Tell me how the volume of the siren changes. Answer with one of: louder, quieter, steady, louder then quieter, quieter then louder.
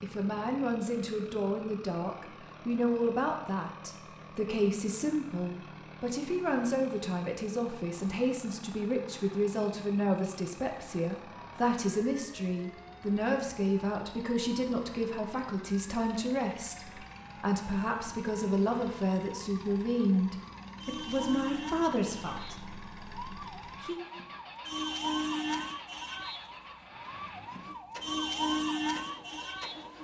louder.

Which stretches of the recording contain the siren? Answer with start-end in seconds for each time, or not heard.
11.3-29.9.